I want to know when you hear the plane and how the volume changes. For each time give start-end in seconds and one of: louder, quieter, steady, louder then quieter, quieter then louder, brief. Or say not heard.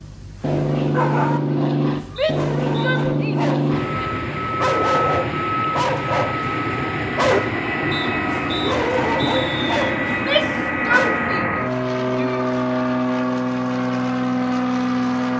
0.0-15.3 steady.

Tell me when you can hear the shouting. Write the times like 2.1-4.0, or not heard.
2.1-4.2, 10.1-12.4.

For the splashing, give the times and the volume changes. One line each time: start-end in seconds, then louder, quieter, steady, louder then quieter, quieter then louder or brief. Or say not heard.
not heard.